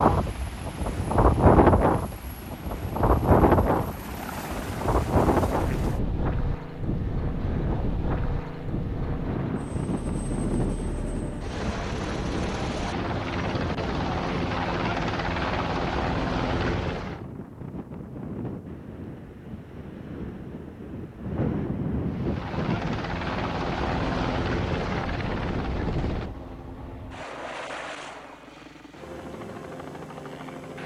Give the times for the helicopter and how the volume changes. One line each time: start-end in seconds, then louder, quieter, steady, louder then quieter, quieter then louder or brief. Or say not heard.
0.2-17.2 louder
22.1-30.8 quieter.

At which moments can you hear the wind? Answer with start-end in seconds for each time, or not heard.
0.0-26.4.